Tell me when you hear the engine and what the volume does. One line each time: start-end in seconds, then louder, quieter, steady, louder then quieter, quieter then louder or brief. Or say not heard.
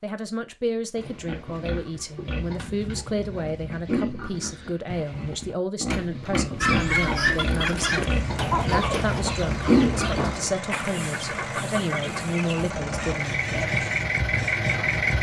6.0-15.1 louder.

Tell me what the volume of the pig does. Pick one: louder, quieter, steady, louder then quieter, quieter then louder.
louder.